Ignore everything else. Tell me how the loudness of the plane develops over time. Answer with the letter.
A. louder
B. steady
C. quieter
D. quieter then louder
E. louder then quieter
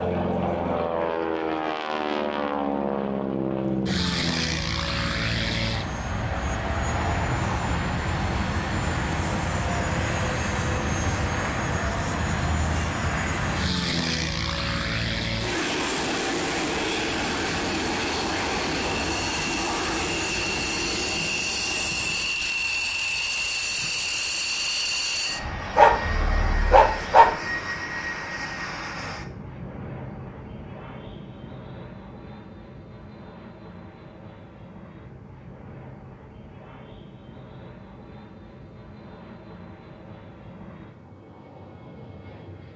C.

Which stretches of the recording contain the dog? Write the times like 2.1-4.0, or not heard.
25.8-27.3.